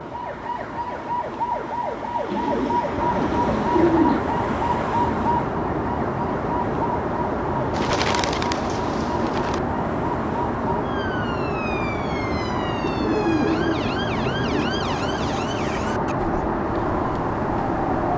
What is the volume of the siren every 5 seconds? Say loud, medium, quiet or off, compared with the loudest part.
loud, loud, medium, medium.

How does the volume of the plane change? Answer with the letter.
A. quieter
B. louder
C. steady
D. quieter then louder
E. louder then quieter
B.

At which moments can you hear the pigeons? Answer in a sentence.
You can hear the pigeons from 2.3 to 4.2 s, from 7.8 to 9.6 s and from 12.8 to 14.8 s.